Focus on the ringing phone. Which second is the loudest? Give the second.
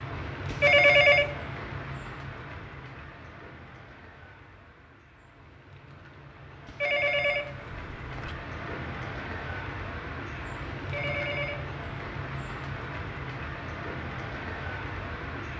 1 s.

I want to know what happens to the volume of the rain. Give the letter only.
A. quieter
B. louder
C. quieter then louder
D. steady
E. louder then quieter
C.